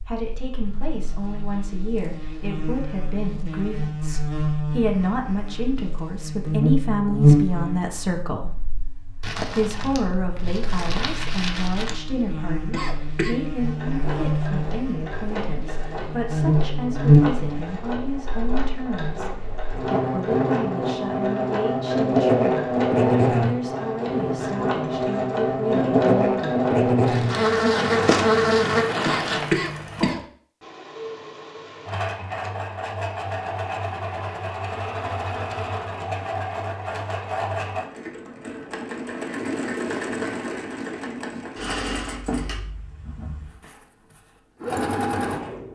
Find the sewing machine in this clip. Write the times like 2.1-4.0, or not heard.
13.6-45.6.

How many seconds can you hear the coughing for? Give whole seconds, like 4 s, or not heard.
2 s.